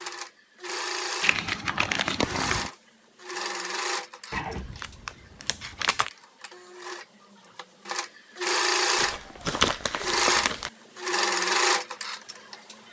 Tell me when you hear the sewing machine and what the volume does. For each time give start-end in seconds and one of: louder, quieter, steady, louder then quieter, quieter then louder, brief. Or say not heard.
0.0-12.8 quieter then louder.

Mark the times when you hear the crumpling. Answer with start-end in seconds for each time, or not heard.
1.2-2.7, 4.3-6.1, 8.9-10.7.